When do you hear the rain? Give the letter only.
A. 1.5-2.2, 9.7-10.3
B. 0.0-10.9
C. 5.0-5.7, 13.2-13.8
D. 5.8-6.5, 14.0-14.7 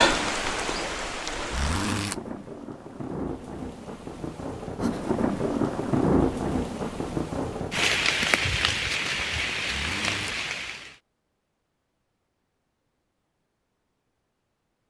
B.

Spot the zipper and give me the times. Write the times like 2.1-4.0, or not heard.
1.5-2.2, 9.7-10.3.